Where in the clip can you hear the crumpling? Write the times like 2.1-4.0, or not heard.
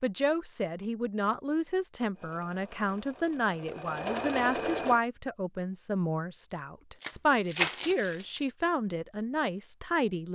7.0-8.4.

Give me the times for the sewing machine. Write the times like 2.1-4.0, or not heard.
2.1-5.0.